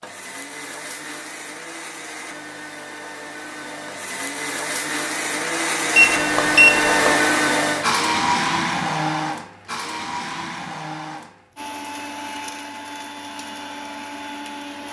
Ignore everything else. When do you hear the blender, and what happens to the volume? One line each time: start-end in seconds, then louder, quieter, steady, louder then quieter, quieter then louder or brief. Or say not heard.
0.0-14.8 louder then quieter.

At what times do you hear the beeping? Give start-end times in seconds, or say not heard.
6.0-7.1.